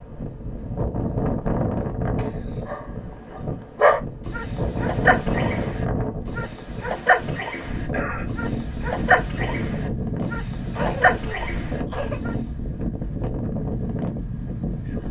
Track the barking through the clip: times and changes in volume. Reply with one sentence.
You can hear the barking from 2.6 to 12.3 s, at a steady volume.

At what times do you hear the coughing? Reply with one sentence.
The coughing can be heard from 0.8 to 2.8 s, from 7.9 to 8.3 s and from 10.8 to 12.2 s.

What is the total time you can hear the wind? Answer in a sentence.
You can hear the wind for 15 seconds altogether.